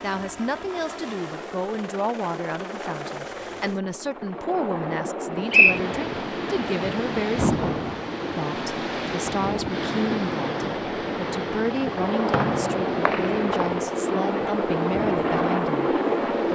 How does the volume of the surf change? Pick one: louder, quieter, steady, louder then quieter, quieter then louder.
quieter.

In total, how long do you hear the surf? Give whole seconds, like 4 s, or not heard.
11 s.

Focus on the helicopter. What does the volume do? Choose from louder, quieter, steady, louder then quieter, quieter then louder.
louder.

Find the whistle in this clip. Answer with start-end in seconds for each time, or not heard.
5.1-5.8, 12.3-13.8.